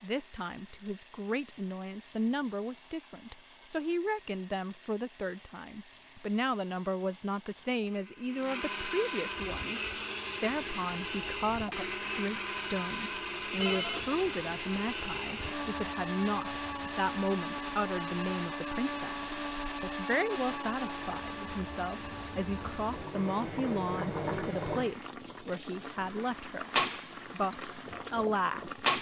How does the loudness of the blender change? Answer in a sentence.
The loudness of the blender goes up, then down.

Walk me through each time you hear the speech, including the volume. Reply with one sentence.
The speech can be heard from 0.0 to 28.9 s, at a steady volume.